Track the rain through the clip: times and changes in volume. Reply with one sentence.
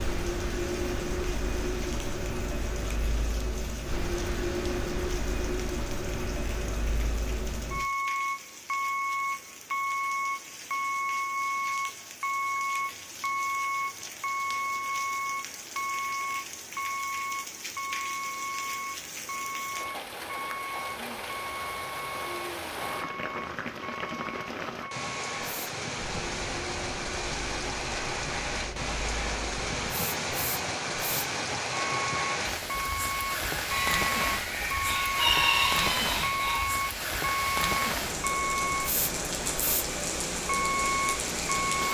You can hear the rain from 0.0 to 41.8 s, getting louder.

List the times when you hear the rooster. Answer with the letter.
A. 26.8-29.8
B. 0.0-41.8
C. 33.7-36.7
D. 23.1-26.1
C.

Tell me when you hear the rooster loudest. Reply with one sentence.
The volume of the rooster peaks at 35 seconds.